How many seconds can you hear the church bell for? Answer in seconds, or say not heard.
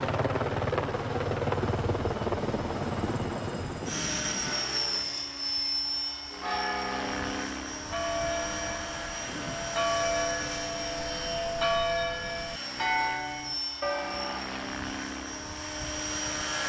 8 s.